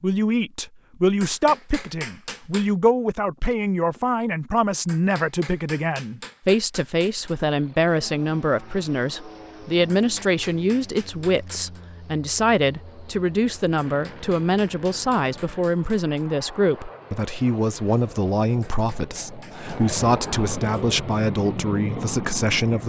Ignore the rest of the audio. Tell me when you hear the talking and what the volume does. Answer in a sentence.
You can hear the talking from 0.0 to 22.8 s, at a steady volume.